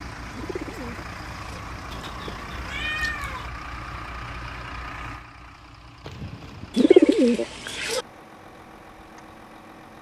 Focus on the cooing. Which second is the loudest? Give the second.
7 s.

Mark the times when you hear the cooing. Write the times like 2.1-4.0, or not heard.
0.3-1.6, 6.8-8.1.